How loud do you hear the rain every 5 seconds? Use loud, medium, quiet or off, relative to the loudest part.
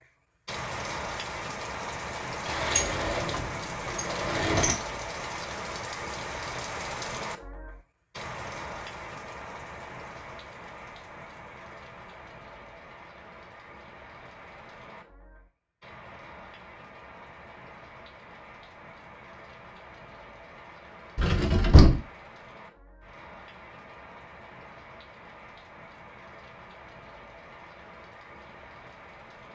loud, loud, medium, quiet, quiet, quiet.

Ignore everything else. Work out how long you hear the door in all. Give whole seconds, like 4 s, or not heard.
3 s.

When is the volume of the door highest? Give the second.
22 s.